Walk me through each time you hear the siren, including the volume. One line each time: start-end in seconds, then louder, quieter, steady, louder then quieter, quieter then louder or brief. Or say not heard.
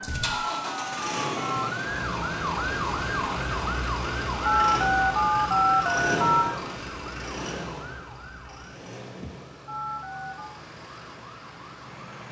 0.0-12.2 quieter.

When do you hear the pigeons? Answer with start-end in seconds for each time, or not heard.
not heard.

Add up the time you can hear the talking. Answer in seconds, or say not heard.
not heard.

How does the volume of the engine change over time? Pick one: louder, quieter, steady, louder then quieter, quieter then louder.
quieter.